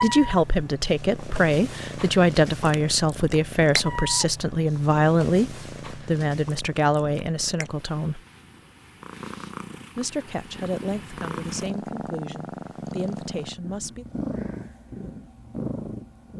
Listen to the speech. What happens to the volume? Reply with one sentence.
The loudness of the speech goes down.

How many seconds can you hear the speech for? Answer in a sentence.
The speech can be heard for 12 seconds in total.